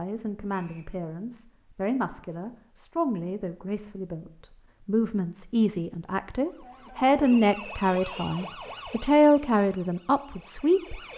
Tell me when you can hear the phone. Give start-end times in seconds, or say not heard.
not heard.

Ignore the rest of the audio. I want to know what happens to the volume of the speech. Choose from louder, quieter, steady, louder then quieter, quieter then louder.
louder.